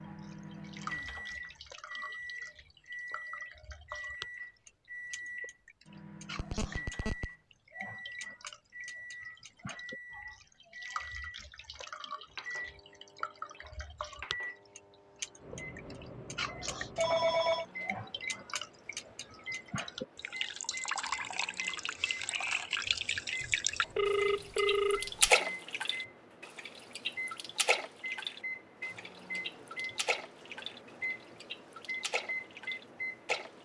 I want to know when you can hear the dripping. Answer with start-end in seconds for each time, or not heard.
0.0-33.6.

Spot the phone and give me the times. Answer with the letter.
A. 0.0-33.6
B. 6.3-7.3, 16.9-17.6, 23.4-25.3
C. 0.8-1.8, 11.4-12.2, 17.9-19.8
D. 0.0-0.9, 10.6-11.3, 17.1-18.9
B.